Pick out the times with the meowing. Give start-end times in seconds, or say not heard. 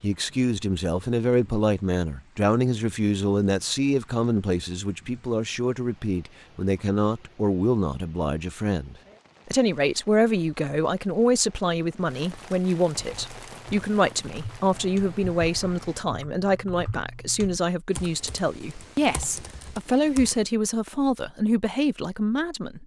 not heard.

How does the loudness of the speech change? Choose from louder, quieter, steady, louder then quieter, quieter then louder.
steady.